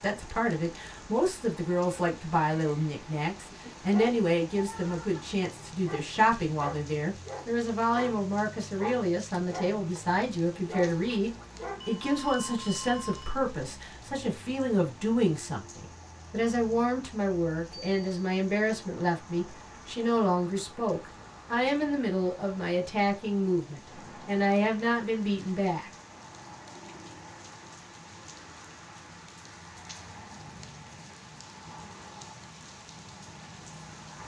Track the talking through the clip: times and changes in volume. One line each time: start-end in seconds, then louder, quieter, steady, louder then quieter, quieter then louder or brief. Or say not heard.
0.0-25.9 steady.